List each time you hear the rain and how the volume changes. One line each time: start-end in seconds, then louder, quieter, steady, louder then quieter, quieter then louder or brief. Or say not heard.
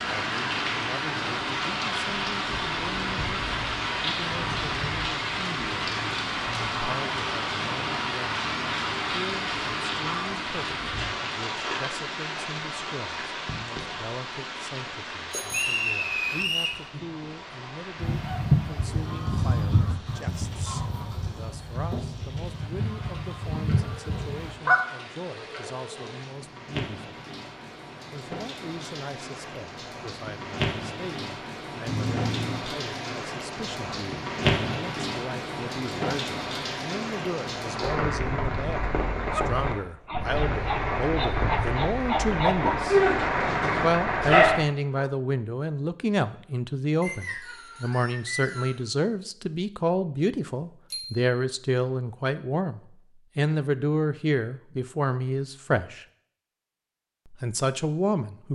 0.0-44.6 quieter then louder.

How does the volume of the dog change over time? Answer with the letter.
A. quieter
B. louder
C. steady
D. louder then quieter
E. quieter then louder
D.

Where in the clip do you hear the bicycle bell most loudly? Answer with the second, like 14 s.
32 s.